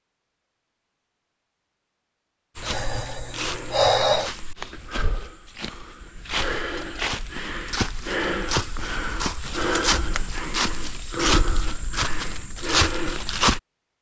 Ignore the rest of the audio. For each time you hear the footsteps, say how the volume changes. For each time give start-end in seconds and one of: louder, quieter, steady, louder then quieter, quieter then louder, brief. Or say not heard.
2.5-13.6 louder.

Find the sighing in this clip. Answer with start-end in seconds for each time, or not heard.
2.6-4.3.